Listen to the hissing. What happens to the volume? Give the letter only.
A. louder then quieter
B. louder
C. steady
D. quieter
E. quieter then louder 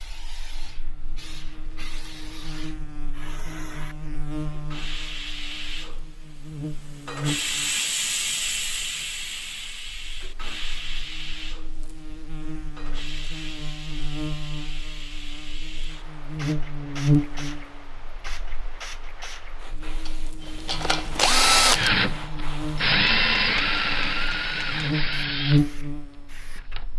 A.